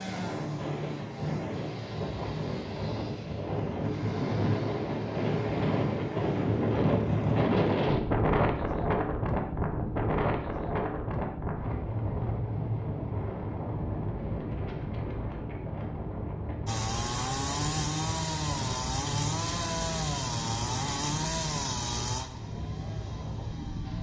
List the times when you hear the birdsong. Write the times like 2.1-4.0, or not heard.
not heard.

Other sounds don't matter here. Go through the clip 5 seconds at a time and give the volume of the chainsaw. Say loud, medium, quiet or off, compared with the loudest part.
medium, quiet, off, loud, loud.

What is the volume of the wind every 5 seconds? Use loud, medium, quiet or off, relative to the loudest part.
medium, loud, medium, medium, medium.